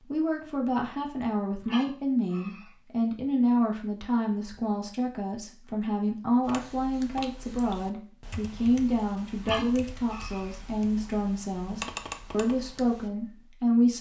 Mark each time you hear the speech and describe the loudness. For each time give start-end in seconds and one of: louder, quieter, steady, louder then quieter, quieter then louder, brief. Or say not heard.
0.0-13.9 steady.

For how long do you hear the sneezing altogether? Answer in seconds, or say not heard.
2 s.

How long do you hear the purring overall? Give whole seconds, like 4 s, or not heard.
not heard.